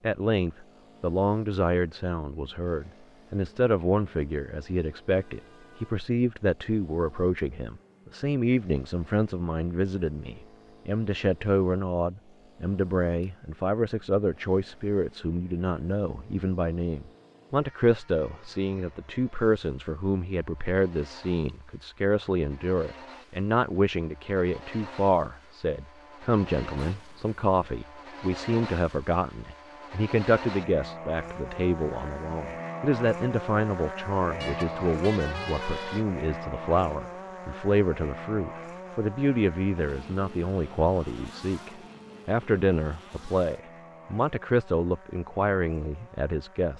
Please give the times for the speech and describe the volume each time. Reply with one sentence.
You can hear the speech from 0.0 to 46.7 s, at a steady volume.